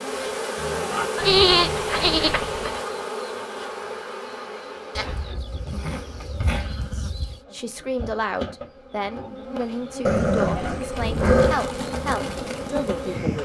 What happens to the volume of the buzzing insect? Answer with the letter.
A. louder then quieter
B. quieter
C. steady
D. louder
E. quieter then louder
E.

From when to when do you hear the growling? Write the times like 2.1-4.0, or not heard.
0.6-2.2, 5.5-6.8, 10.1-11.6.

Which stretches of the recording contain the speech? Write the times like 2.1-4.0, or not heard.
6.9-13.4.